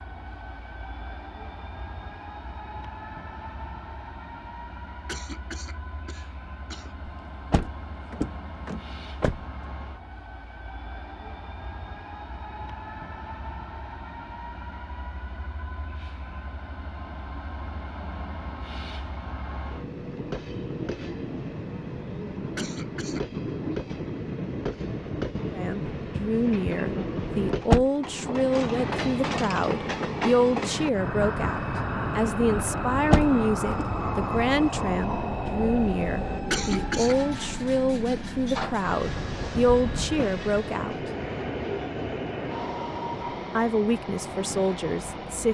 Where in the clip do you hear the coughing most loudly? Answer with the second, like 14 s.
37 s.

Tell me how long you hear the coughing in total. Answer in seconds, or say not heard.
3 s.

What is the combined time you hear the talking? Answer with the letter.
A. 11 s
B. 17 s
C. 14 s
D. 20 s
B.